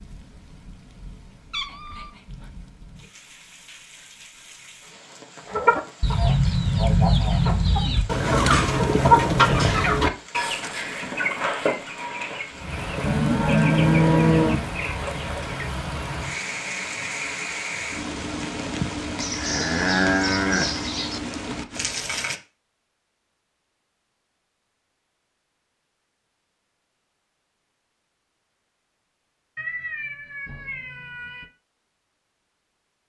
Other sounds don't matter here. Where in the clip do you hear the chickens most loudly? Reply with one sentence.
The loudest moment of the chickens is at 9 seconds.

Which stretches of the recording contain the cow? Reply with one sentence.
You can hear the cow from 13.0 to 14.6 s and from 19.2 to 21.2 s.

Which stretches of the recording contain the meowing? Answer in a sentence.
You can hear the meowing from 1.5 to 2.1 s and from 29.6 to 31.4 s.